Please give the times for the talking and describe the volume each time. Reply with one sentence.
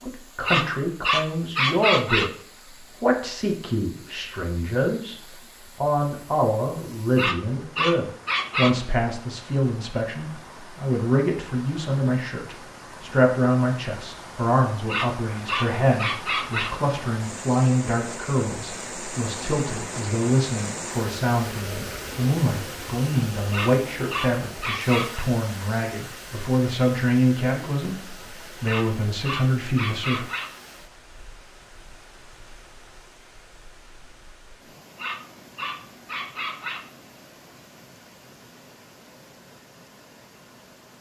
You can hear the talking briefly from 0.0 to 2.3 s; briefly from 3.0 to 5.2 s; and from 5.8 to 30.2 s, at a steady volume.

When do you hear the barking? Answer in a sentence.
You can hear the barking from 0.5 to 2.3 s, from 7.2 to 8.8 s, from 14.8 to 16.8 s, from 23.5 to 25.2 s, from 28.6 to 30.6 s and from 35.0 to 36.9 s.